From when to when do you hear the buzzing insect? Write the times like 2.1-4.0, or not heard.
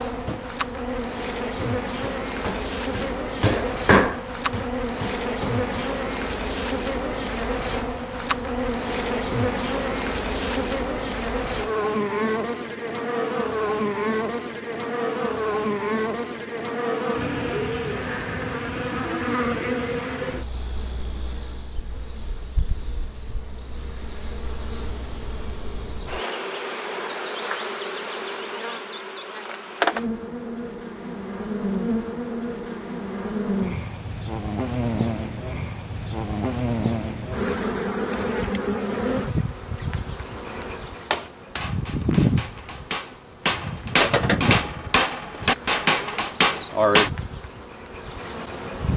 0.0-48.9.